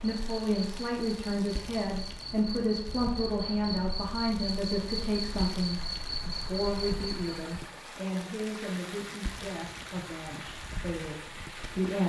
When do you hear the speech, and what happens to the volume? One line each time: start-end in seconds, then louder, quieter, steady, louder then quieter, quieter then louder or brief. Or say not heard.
0.0-12.0 quieter.